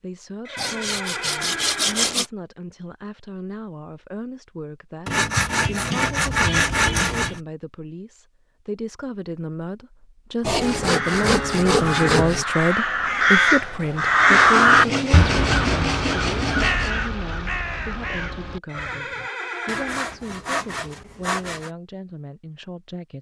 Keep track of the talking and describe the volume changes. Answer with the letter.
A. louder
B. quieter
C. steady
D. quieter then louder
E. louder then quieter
E.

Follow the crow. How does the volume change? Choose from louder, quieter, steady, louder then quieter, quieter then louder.
louder then quieter.